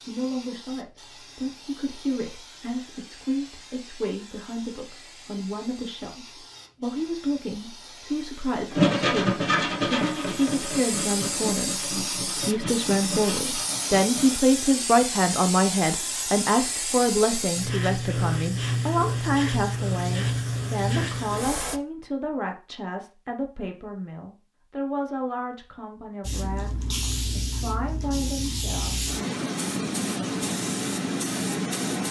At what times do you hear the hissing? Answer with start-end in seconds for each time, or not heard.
0.0-21.8, 26.2-32.0.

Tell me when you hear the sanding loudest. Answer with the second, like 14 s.
9 s.